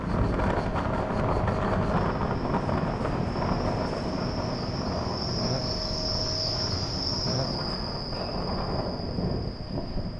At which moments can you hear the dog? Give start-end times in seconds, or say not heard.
not heard.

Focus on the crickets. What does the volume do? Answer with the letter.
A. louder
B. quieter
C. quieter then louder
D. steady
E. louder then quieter
E.